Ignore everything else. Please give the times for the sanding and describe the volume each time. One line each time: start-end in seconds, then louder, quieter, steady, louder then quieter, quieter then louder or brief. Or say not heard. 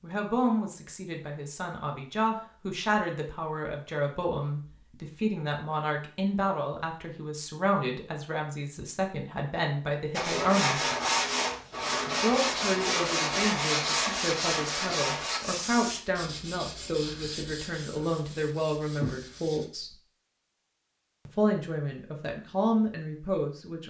10.2-19.7 quieter.